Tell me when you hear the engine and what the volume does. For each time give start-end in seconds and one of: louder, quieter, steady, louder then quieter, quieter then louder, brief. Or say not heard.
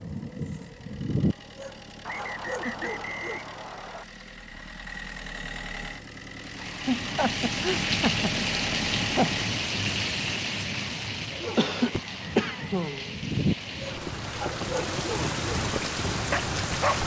0.0-9.7 louder.